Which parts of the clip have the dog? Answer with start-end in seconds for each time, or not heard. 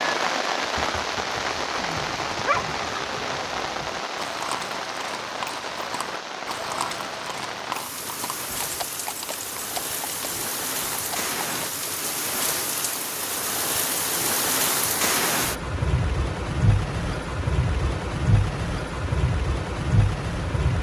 1.7-2.8.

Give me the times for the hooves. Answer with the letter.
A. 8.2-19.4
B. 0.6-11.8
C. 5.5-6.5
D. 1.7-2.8
B.